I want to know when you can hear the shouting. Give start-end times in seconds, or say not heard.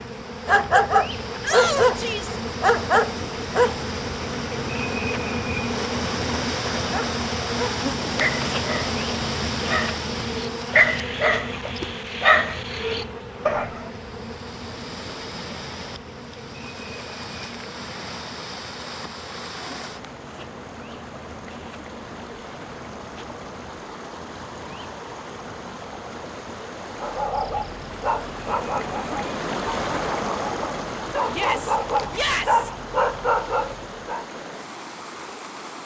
1.4-2.4, 31.3-32.7.